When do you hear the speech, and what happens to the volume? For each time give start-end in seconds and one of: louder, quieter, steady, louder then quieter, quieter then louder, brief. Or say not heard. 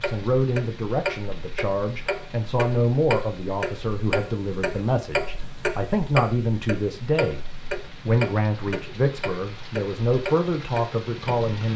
0.0-11.7 steady.